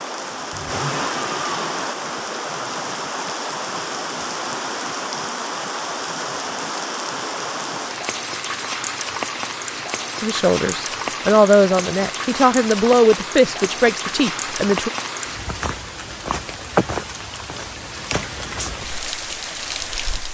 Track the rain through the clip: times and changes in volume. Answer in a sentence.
The rain can be heard from 0.0 to 20.2 s, at a steady volume.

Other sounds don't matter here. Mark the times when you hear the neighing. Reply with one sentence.
You can hear the neighing from 0.5 to 1.7 s.